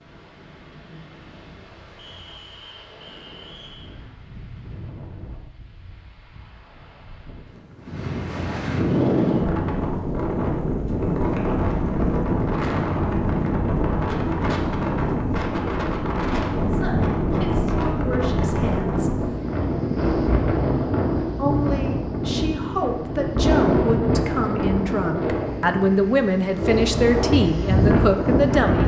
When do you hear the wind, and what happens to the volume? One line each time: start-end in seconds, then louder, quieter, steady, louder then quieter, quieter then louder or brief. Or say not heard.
0.0-28.8 louder.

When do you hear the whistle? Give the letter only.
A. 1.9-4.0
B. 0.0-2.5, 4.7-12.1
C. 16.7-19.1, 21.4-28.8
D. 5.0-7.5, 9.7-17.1
A.